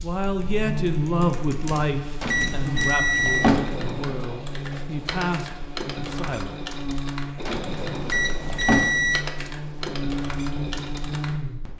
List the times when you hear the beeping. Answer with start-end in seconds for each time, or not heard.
2.2-3.5, 8.1-9.2.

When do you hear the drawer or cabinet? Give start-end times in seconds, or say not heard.
2.2-3.9, 7.5-8.9.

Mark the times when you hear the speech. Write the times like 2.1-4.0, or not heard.
0.0-6.5.